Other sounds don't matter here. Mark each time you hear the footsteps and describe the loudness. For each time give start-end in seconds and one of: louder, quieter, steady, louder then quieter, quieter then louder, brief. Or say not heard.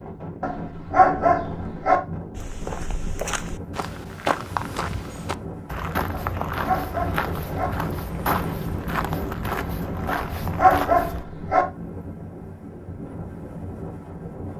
2.4-11.2 steady.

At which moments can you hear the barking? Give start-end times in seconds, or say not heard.
0.4-2.0, 6.1-7.7, 10.1-11.7.